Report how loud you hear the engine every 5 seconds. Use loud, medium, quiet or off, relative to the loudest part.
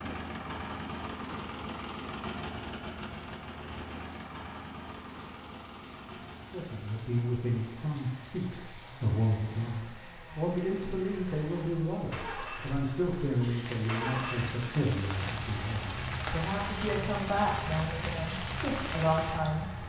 loud, medium, loud, loud.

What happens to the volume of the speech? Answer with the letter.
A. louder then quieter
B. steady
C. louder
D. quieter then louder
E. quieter
B.